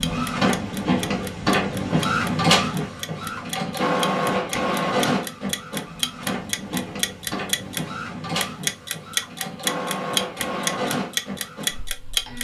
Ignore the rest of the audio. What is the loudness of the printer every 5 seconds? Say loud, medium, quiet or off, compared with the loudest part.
loud, medium, medium.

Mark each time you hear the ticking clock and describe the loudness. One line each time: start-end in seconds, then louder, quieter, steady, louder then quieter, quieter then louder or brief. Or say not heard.
0.0-12.3 louder.